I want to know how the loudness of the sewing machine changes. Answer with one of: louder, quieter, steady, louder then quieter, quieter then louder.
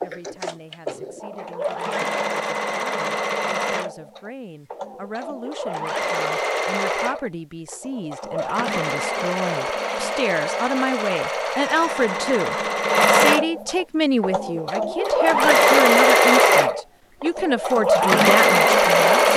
louder.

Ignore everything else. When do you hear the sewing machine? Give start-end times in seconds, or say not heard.
0.0-19.3.